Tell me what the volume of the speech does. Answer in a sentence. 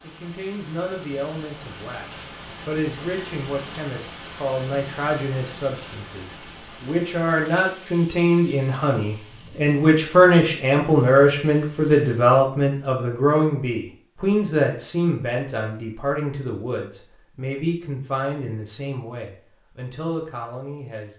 The volume of the speech goes up, then down.